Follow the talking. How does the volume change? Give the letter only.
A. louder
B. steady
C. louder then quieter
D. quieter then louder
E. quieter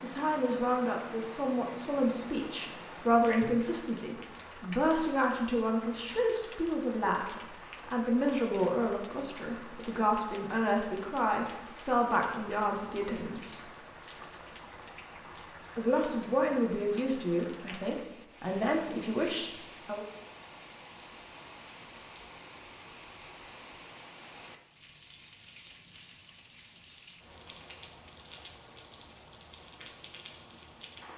B.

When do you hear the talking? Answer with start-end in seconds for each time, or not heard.
0.0-13.7, 15.8-20.1.